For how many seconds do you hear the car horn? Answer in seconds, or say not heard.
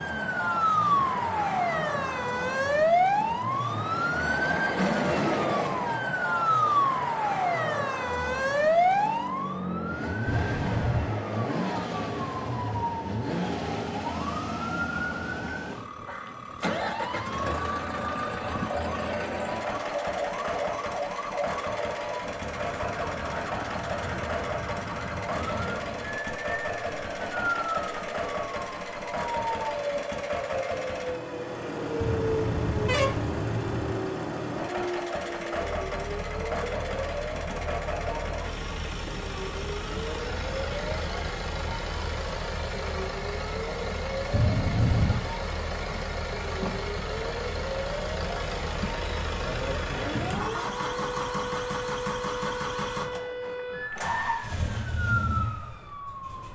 4 s.